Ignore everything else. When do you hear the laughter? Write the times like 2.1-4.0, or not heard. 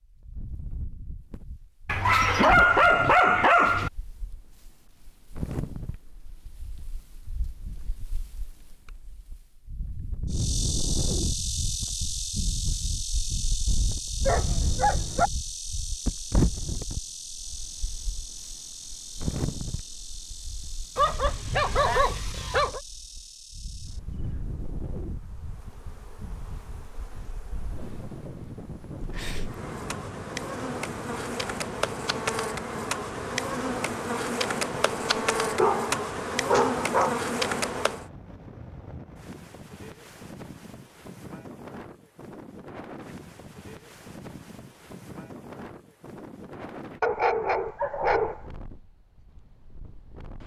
not heard.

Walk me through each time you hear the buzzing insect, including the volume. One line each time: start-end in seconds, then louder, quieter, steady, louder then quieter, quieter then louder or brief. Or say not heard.
10.3-38.0 quieter then louder.